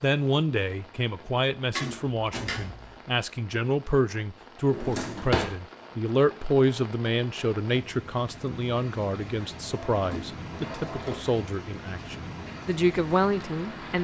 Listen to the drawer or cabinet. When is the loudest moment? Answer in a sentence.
The volume of the drawer or cabinet peaks at 5 seconds.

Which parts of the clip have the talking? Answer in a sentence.
You can hear the talking from 0.0 to 13.9 s.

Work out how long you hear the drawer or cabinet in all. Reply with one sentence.
You can hear the drawer or cabinet for 4 seconds altogether.